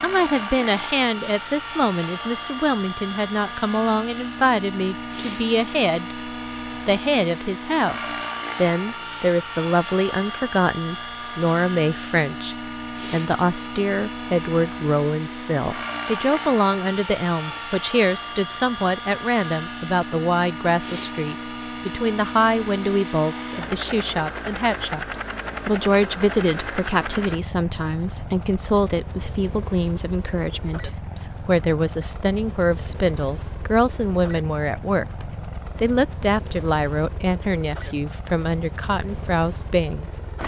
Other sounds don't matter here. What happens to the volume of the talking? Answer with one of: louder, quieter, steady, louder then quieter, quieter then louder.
steady.